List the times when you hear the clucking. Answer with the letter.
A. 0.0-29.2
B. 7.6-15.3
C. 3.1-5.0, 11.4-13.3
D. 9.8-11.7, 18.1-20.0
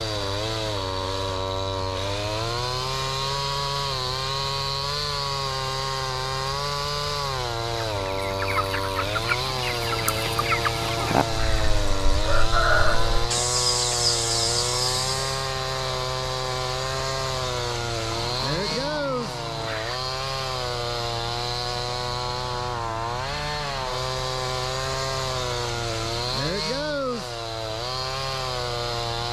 B.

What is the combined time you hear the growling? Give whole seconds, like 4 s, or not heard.
4 s.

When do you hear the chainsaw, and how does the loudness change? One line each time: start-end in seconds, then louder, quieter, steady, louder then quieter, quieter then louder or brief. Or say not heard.
0.0-29.2 steady.